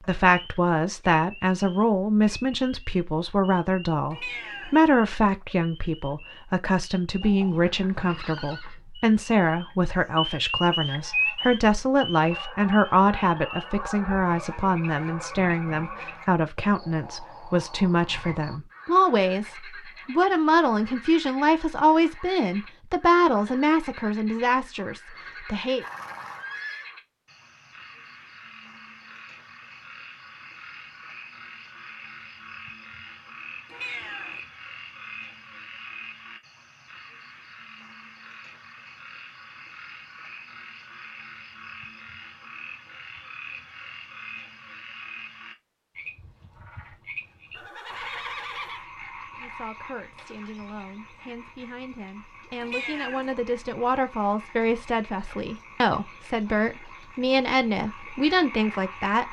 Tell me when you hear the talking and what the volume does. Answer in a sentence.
The talking can be heard from 0.1 to 25.9 s, at a steady volume; and from 49.4 to 59.2 s, getting louder.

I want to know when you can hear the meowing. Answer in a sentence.
You can hear the meowing from 4.1 to 4.8 s, from 33.6 to 34.4 s and from 52.6 to 53.4 s.